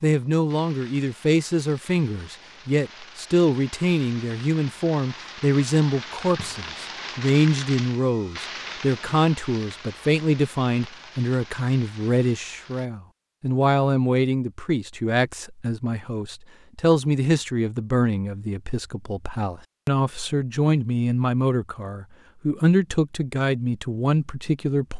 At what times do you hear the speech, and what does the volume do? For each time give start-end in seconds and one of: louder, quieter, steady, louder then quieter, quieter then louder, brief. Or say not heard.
0.0-24.9 steady.